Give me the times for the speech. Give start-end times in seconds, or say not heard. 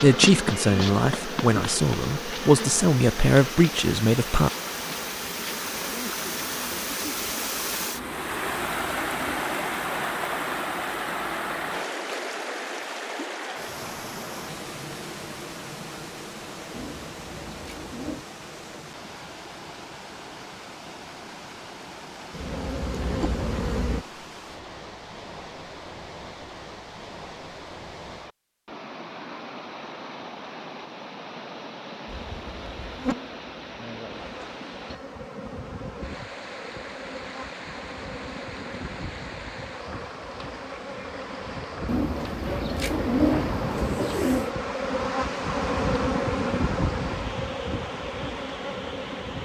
0.0-4.5.